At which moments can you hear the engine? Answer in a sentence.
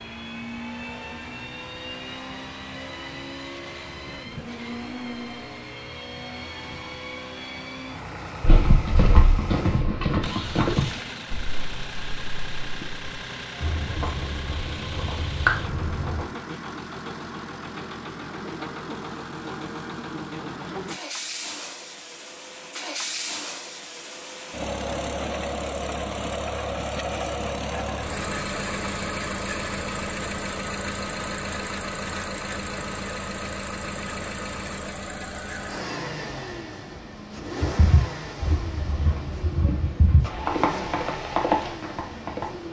You can hear the engine from 0.0 to 42.6 s.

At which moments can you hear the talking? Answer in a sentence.
The talking can't be heard in this clip.